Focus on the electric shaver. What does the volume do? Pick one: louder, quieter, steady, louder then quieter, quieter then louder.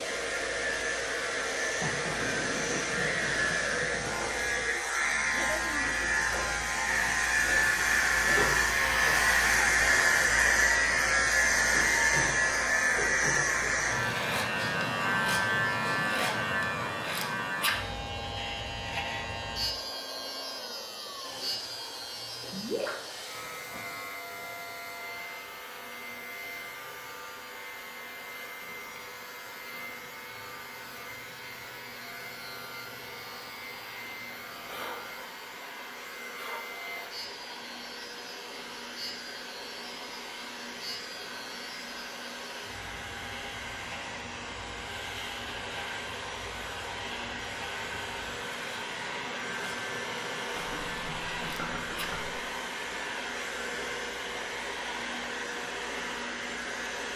quieter.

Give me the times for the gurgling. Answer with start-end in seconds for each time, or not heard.
2.1-4.2, 22.4-23.1, 50.5-52.4.